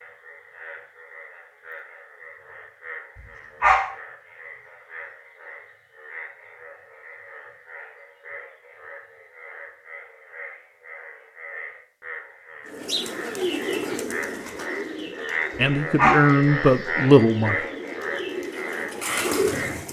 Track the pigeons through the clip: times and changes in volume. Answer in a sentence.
The pigeons can be heard from 12.7 to 19.8 s, getting quieter then louder.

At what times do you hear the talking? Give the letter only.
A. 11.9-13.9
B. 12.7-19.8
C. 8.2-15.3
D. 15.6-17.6
D.